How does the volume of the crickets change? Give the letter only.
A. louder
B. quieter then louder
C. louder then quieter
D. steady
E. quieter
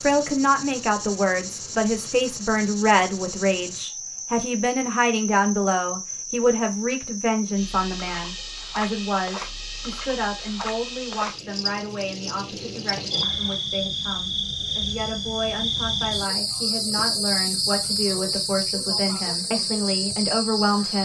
A.